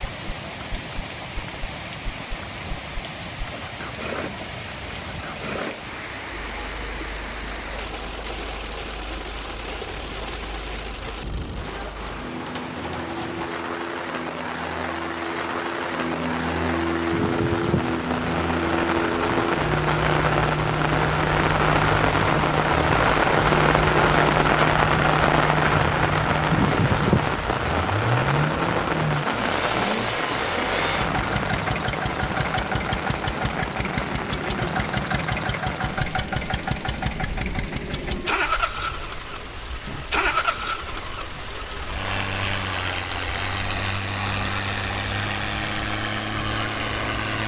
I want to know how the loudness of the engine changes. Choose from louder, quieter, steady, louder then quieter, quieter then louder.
louder.